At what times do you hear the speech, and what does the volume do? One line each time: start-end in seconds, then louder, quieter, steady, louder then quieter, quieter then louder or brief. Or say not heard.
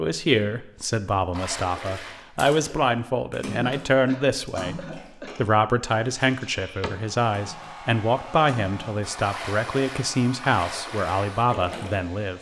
0.0-12.3 steady.